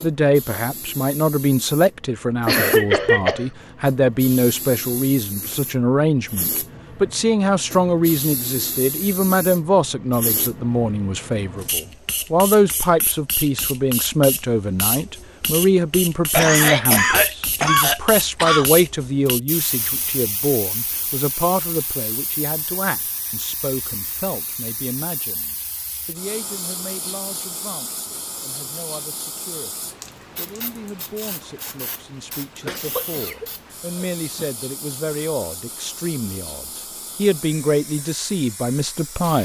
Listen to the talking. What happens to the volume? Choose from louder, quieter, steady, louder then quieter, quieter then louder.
quieter then louder.